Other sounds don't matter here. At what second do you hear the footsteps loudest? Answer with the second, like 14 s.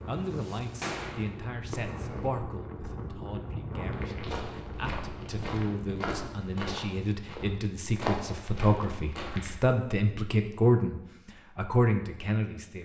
8 s.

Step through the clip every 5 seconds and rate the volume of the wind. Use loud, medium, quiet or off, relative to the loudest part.
loud, loud, off.